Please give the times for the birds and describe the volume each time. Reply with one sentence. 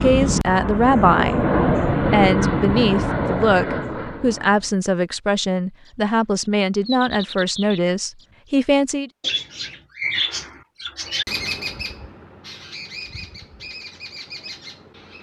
The birds can be heard from 5.8 to 15.1 s, getting louder then quieter.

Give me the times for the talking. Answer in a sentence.
The talking can be heard from 0.0 to 9.1 s.